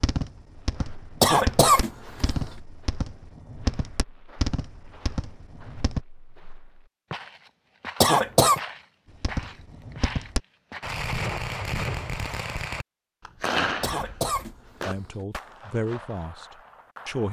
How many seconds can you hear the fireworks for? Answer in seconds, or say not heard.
14 s.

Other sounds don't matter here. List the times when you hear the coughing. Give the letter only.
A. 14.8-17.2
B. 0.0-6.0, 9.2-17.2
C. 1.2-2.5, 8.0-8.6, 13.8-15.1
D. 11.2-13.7
C.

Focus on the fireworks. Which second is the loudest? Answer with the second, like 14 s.
14 s.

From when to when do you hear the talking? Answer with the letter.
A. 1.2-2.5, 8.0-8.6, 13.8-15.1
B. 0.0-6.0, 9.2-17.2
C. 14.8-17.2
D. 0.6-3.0
C.